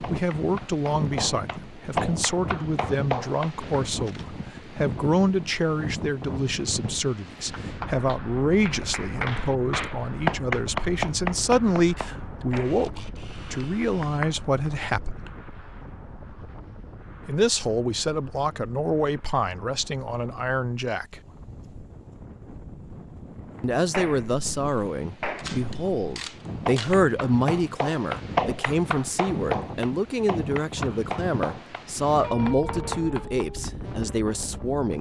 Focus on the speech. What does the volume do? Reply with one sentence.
The loudness of the speech stays about the same.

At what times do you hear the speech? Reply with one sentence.
The speech can be heard from 0.0 to 15.3 s, from 17.2 to 21.2 s and from 23.6 to 34.9 s.